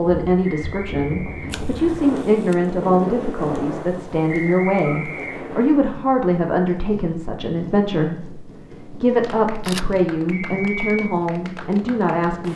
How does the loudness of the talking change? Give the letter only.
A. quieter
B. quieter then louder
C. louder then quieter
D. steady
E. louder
D.